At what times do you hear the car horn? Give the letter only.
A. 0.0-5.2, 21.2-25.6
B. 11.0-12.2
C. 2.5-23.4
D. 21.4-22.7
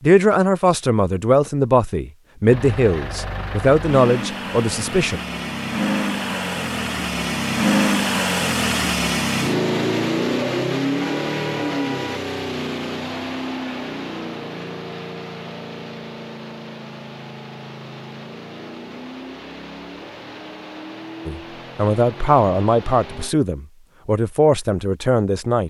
B.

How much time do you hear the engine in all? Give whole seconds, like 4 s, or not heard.
21 s.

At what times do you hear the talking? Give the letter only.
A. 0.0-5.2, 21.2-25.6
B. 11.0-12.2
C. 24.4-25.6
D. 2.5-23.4
A.